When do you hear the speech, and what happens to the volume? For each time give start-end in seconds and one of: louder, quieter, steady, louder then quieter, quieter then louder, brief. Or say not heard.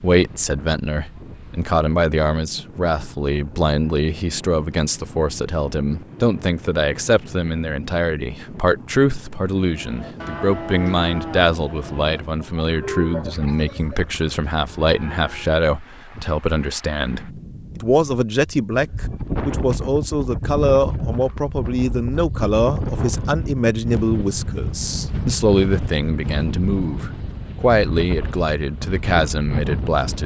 0.0-30.2 steady.